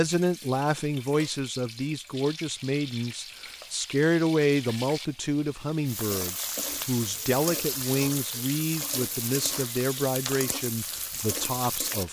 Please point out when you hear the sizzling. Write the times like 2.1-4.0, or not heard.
0.0-12.0.